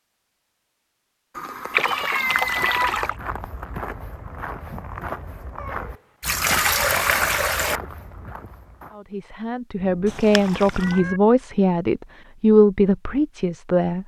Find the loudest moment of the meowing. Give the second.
3 s.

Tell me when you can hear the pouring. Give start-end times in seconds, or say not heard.
1.7-3.1, 6.2-7.8, 10.1-11.0.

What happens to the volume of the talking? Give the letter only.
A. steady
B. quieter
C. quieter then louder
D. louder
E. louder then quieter
E.